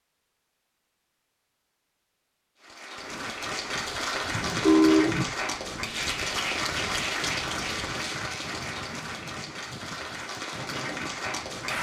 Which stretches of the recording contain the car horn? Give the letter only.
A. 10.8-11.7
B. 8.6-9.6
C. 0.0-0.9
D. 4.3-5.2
D.